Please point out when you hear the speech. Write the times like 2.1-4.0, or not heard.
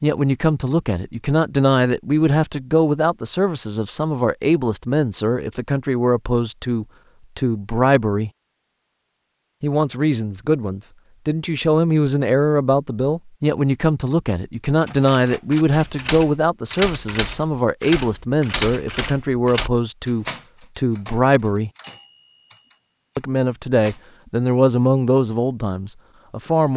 0.0-8.3, 9.6-21.7, 23.1-26.7.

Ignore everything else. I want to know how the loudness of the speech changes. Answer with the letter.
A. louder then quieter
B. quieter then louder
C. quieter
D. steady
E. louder
D.